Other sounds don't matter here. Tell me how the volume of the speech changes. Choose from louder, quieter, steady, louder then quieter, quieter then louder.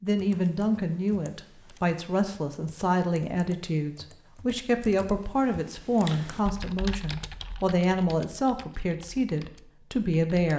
steady.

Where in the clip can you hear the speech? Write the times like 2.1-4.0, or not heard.
0.0-10.5.